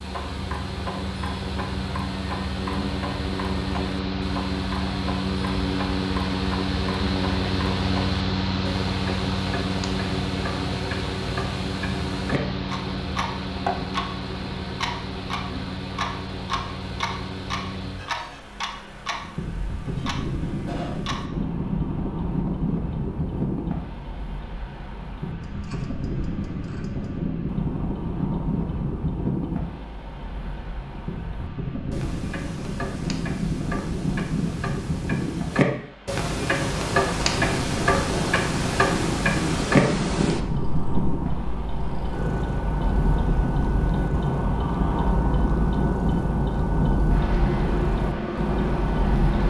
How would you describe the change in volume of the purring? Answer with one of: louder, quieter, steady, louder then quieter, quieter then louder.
steady.